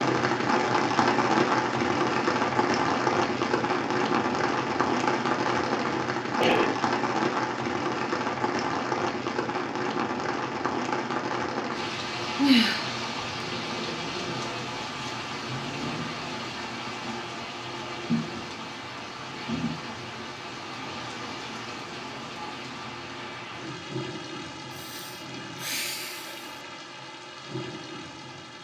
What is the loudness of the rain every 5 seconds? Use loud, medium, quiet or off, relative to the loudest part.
loud, loud, medium, medium, quiet, quiet.